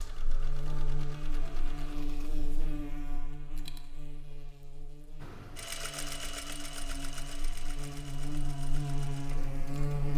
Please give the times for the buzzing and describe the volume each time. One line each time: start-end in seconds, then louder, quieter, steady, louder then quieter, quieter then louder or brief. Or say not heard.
0.0-10.1 quieter then louder.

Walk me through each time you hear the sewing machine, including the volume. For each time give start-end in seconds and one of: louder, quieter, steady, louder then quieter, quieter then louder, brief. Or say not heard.
0.0-2.3 brief
5.2-10.1 quieter.